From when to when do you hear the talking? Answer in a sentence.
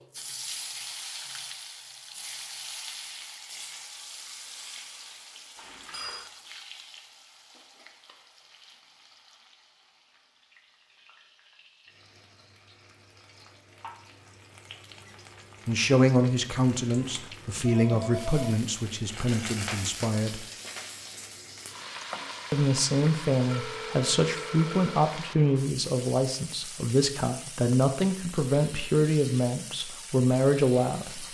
You can hear the talking from 15.7 to 20.4 s and from 22.5 to 31.2 s.